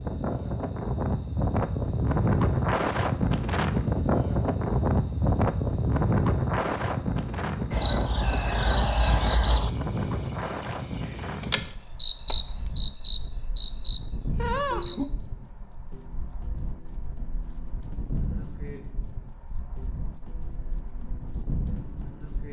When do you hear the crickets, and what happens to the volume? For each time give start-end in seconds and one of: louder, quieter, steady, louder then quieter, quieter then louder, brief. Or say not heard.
0.0-22.4 quieter.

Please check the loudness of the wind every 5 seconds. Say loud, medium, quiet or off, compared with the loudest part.
loud, loud, medium, quiet, quiet.